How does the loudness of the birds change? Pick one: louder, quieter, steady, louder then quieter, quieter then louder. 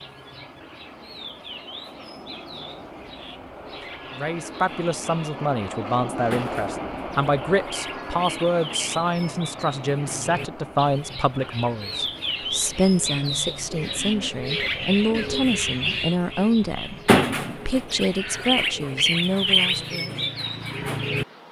louder.